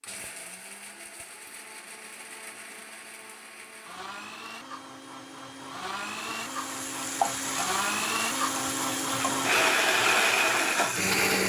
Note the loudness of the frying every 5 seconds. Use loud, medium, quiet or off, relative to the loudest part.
off, loud, loud.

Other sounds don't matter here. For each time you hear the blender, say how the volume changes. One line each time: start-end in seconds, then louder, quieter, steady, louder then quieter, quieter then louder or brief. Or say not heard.
0.0-11.4 louder.